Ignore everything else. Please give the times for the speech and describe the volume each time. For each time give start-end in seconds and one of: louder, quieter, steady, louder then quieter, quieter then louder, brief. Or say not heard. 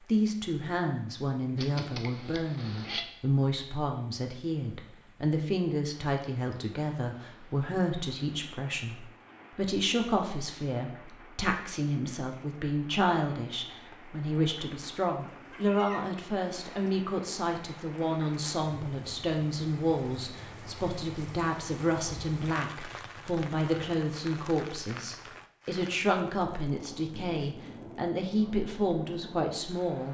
0.0-30.0 steady.